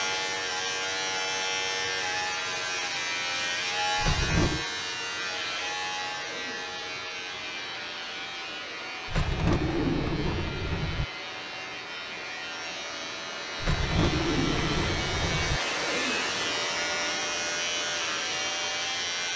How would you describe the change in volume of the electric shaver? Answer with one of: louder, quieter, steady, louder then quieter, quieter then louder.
quieter then louder.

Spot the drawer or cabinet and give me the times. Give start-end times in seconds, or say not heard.
4.0-4.7, 9.1-11.1, 13.6-15.6.